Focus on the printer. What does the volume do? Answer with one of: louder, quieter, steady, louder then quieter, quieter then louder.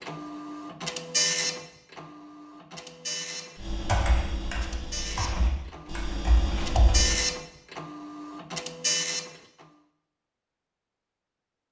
quieter then louder.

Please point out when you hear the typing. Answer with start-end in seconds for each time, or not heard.
3.5-7.2.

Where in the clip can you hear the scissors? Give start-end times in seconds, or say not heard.
not heard.